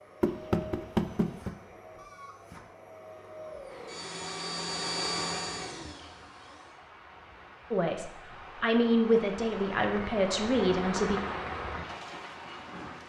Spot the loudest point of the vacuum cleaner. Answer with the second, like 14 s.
5 s.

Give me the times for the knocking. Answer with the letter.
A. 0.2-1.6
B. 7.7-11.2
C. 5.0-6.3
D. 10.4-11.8
A.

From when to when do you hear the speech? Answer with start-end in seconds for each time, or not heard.
7.7-11.2.